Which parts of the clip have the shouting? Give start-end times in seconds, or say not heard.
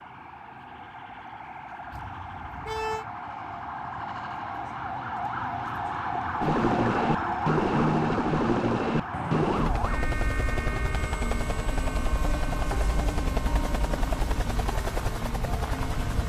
not heard.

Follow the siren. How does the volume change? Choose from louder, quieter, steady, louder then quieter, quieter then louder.
louder then quieter.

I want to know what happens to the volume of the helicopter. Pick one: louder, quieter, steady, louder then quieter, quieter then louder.
quieter.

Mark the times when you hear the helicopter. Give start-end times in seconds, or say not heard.
6.4-16.2.